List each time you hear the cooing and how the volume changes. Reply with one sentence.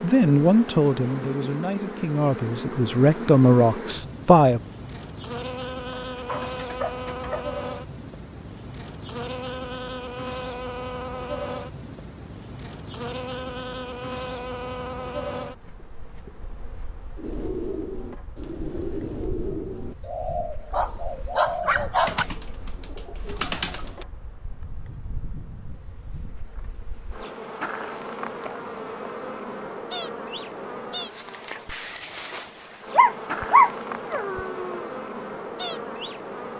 The cooing can be heard from 17.1 to 24.1 s, at a steady volume.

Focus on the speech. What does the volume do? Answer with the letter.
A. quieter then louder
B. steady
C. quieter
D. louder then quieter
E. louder
A.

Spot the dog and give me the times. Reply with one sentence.
The dog can be heard from 6.1 to 7.5 s, from 20.7 to 22.2 s and from 32.9 to 34.9 s.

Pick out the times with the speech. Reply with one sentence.
You can hear the speech from 0.0 to 4.6 s.